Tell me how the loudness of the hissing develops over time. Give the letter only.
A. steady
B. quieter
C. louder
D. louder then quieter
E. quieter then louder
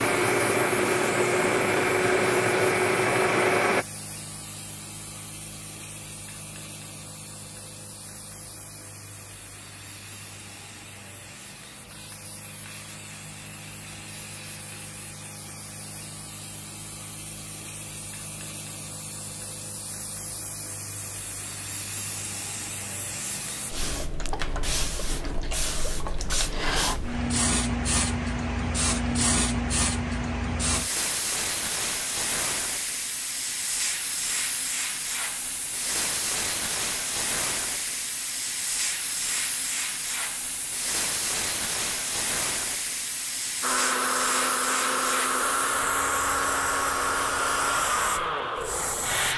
C.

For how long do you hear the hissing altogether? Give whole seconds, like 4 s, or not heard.
49 s.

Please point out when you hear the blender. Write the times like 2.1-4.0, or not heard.
0.0-3.9, 43.6-49.3.